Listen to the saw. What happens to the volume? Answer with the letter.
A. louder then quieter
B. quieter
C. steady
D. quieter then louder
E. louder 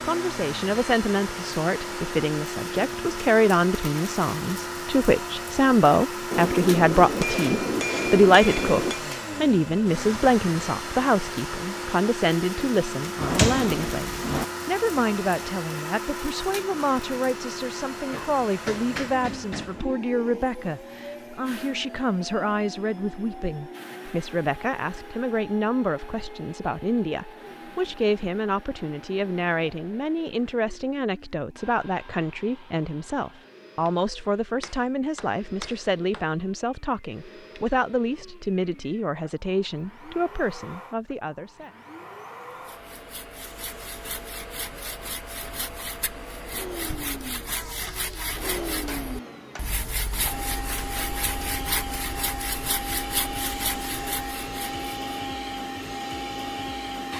E.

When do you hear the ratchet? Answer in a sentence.
The ratchet can't be heard in this clip.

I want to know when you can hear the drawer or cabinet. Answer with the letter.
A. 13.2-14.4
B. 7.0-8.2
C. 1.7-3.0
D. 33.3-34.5
A.